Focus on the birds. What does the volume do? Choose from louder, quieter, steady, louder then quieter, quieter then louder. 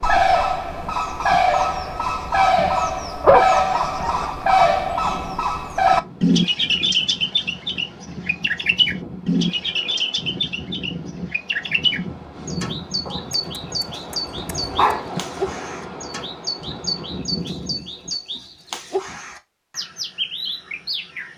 quieter.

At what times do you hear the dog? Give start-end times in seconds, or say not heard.
3.2-4.7, 13.1-15.2.